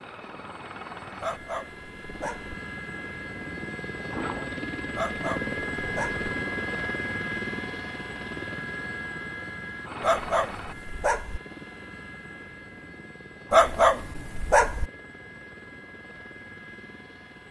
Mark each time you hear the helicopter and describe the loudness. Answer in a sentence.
You can hear the helicopter from 0.0 to 17.4 s, getting louder then quieter.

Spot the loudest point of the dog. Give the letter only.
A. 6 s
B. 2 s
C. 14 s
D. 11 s
C.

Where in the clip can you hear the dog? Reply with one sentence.
You can hear the dog from 1.2 to 2.5 s, from 5.0 to 6.3 s, from 10.0 to 11.4 s and from 13.5 to 14.9 s.